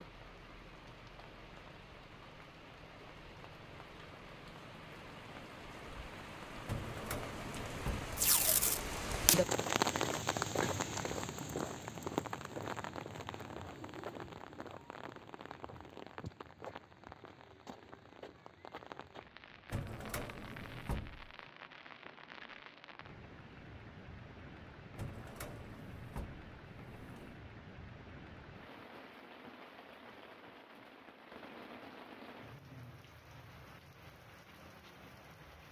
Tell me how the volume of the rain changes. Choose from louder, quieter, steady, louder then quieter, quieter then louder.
louder then quieter.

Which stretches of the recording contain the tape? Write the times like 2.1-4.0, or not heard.
8.2-9.4.